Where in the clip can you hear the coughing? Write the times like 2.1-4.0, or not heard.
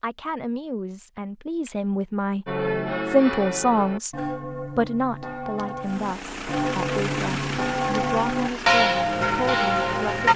not heard.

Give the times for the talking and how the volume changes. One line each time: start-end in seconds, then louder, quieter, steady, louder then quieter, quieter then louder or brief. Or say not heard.
0.0-10.3 louder then quieter.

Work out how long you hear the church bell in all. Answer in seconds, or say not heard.
8 s.